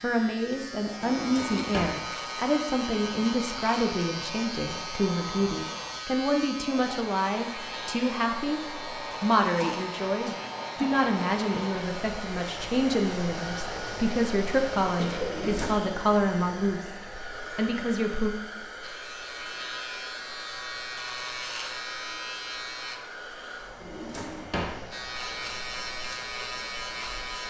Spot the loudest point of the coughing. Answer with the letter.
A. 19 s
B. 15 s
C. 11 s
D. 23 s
B.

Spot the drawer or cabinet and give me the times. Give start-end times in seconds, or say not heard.
1.0-2.0, 15.2-15.8, 23.8-24.8.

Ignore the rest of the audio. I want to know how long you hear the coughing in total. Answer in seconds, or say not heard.
2 s.